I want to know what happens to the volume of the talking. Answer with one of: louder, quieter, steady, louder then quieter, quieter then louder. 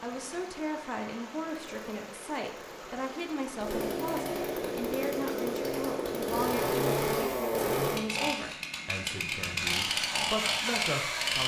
steady.